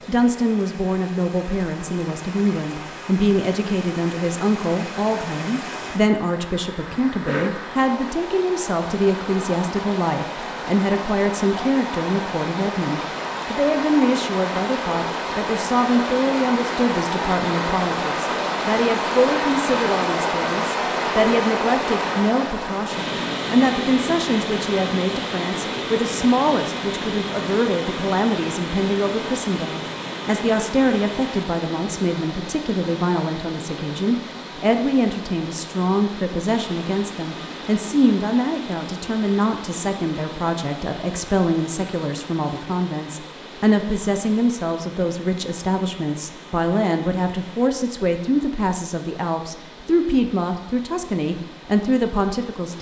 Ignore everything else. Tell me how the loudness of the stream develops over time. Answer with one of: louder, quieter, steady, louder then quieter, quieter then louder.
louder then quieter.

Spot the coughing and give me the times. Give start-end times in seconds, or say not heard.
7.2-7.7.